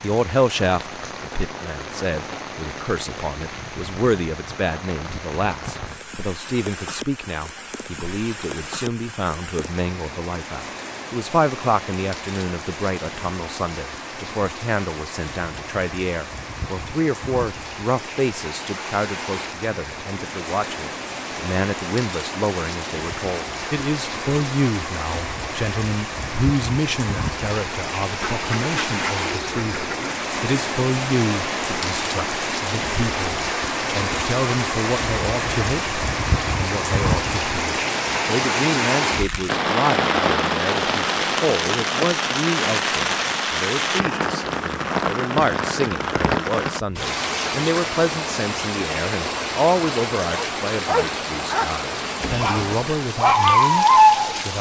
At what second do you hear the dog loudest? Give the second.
54 s.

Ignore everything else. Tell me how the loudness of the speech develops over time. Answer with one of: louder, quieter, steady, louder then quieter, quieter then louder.
steady.